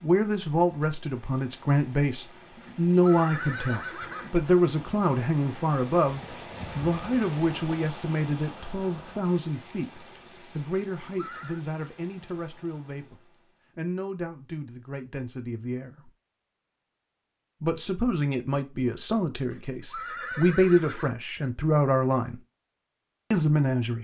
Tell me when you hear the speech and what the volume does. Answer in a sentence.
The speech can be heard from 0.0 to 16.1 s, getting quieter; from 17.6 to 22.4 s, getting quieter then louder; and briefly from 23.3 to 23.9 s.